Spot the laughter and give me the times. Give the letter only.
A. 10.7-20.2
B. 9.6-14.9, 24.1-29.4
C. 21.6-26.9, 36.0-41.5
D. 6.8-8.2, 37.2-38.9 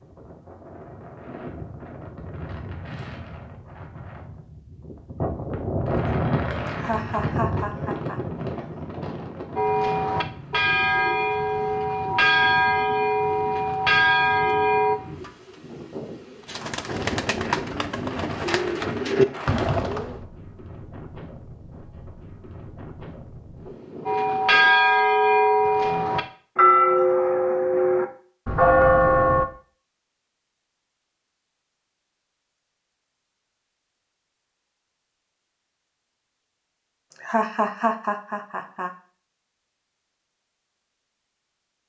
D.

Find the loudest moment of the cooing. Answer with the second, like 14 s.
19 s.